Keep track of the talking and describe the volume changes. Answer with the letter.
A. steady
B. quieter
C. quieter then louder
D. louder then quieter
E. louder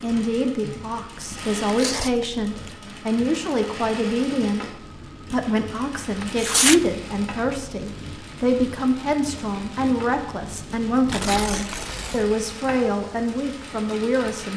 A.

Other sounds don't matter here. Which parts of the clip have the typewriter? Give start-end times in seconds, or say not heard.
not heard.